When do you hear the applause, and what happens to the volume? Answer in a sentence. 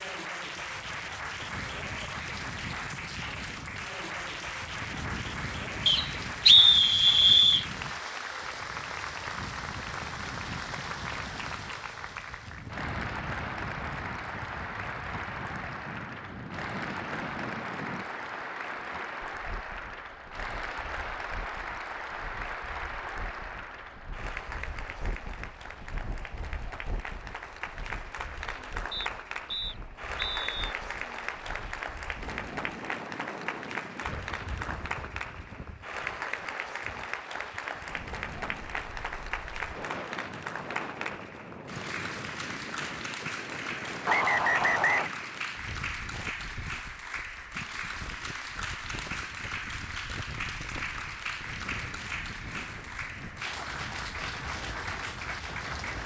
The applause can be heard from 0.0 to 56.0 s, at a steady volume.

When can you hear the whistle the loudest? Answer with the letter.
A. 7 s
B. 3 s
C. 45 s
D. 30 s
A.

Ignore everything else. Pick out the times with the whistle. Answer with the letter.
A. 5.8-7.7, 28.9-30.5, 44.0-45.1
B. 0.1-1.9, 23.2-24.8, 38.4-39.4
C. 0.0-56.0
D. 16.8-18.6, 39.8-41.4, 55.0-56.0
A.